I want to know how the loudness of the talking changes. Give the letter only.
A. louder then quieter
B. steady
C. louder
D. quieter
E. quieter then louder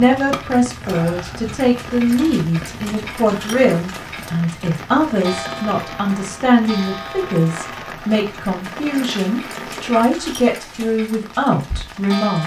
B.